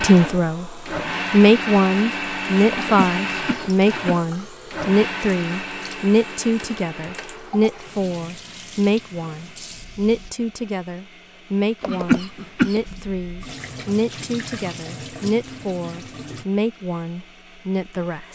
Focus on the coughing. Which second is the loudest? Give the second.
12 s.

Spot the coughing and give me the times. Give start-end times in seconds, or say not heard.
2.7-4.2, 11.8-12.8.